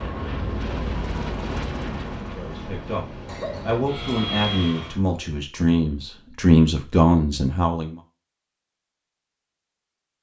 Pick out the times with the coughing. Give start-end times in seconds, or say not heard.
3.2-4.2.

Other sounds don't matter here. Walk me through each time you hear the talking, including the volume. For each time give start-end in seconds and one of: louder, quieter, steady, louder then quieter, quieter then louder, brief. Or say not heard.
2.3-8.0 louder.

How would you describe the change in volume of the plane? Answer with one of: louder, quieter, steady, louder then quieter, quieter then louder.
quieter then louder.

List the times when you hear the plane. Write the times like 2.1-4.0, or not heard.
0.0-5.0.